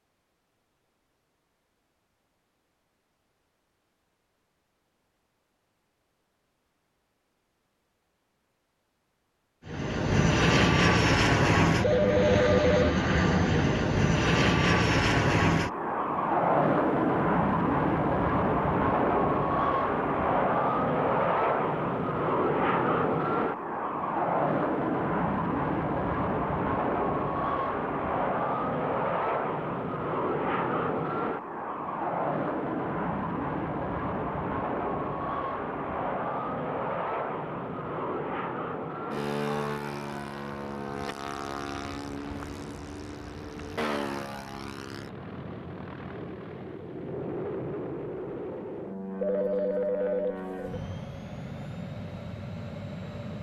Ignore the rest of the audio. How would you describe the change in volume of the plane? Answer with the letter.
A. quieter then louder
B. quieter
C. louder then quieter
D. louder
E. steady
B.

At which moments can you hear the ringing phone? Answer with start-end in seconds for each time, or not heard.
11.8-12.9, 49.2-50.8.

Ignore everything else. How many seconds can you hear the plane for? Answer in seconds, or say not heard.
44 s.